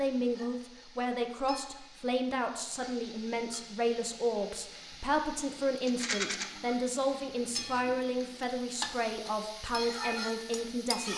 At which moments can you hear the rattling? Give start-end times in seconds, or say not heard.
5.8-6.5.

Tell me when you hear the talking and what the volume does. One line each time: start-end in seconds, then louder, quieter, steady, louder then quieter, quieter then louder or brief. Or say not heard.
0.0-11.1 steady.